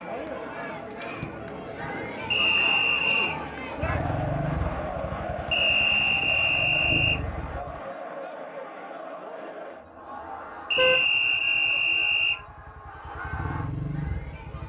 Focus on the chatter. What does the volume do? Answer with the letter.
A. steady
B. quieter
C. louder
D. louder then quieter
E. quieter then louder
B.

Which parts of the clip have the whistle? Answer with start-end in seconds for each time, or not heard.
2.3-3.4, 5.5-7.2, 10.7-12.4.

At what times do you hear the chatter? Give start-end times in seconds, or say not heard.
0.0-14.6.